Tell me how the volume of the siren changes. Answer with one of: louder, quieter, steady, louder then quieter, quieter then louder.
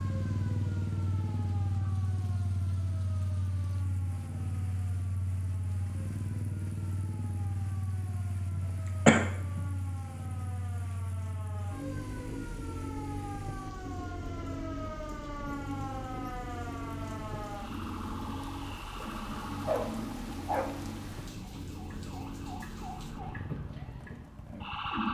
louder.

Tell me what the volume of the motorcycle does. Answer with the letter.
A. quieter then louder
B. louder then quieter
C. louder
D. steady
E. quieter
E.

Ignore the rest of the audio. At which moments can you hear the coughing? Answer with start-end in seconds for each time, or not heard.
8.5-9.6.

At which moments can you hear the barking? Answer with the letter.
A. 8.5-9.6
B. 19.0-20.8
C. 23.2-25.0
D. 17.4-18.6
B.